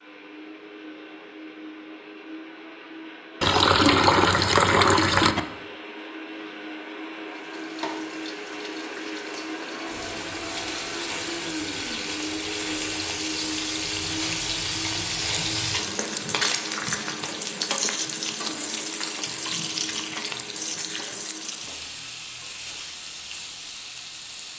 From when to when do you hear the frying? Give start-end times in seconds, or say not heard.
7.3-24.5.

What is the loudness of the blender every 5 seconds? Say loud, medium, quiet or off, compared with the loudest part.
medium, loud, loud, medium, medium.